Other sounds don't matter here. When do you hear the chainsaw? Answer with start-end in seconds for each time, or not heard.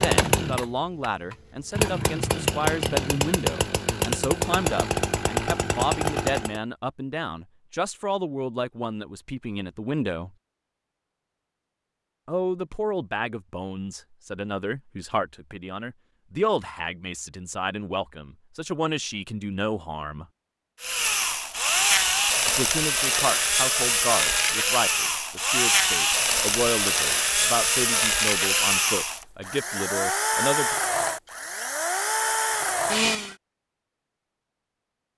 0.0-6.6, 20.8-33.4.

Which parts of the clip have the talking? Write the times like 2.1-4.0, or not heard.
0.0-10.3, 12.2-20.2, 22.4-30.8.